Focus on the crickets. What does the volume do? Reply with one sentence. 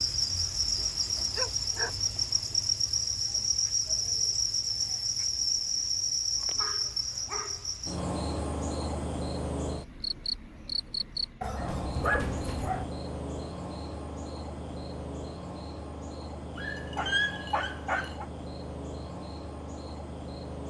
The volume of the crickets goes down.